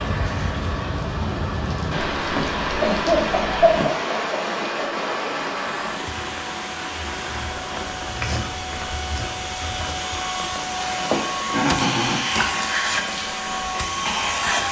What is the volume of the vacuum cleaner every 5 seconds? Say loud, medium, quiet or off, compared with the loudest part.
medium, medium, loud.